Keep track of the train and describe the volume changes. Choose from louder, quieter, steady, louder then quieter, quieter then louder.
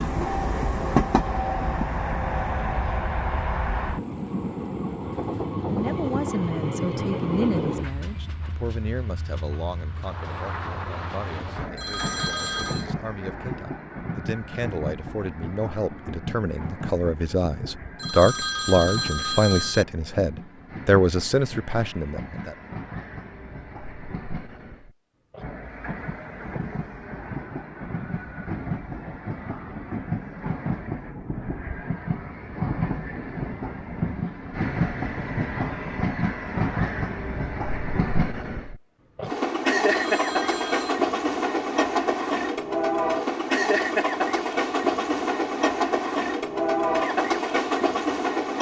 quieter then louder.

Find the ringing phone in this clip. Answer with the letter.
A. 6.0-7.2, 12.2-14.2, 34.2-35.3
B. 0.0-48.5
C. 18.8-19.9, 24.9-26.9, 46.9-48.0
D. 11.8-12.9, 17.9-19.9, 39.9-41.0
D.